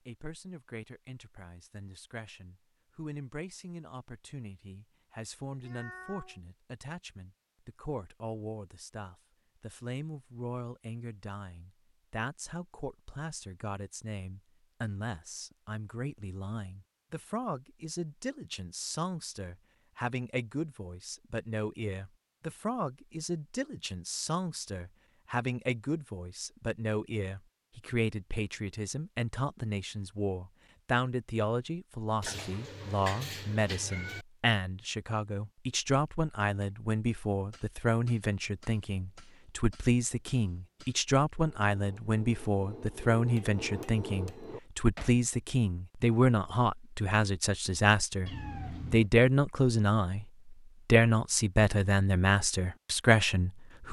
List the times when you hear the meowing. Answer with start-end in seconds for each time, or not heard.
5.6-6.4, 32.2-34.2, 48.2-49.1.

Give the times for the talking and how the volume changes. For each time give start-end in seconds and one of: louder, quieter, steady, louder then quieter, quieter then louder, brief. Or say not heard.
0.1-53.8 louder.